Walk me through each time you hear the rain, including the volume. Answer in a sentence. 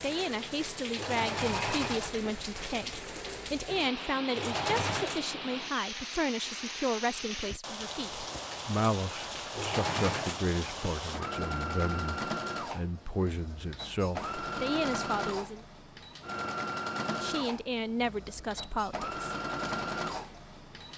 The rain can be heard from 0.0 to 11.2 s, at a steady volume.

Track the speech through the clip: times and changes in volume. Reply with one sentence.
The speech can be heard from 0.0 to 15.7 s, at a steady volume; and briefly from 17.1 to 19.1 s.